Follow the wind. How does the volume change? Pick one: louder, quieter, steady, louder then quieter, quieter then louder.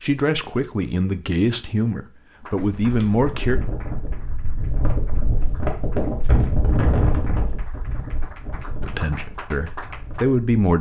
louder then quieter.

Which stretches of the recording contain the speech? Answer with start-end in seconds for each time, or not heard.
0.0-3.6, 8.8-10.7.